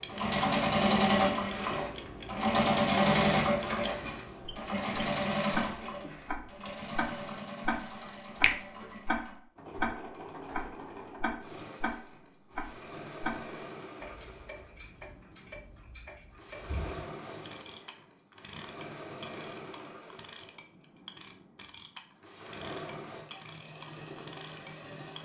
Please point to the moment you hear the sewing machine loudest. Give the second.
3 s.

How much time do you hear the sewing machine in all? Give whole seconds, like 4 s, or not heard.
25 s.